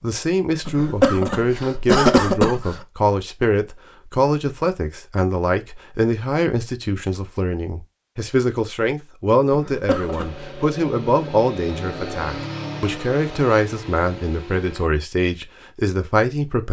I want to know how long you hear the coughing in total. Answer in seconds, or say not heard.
3 s.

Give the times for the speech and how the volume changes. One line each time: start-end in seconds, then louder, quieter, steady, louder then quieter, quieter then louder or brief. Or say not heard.
0.0-16.6 steady.